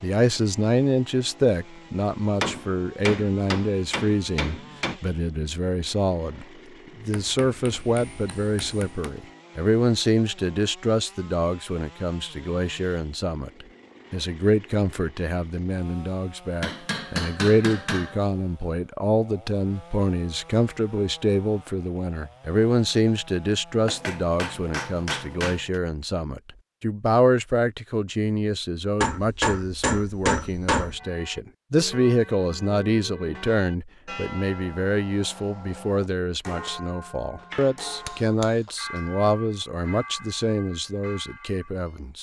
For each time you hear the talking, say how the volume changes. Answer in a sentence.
You can hear the talking from 0.0 to 42.1 s, at a steady volume.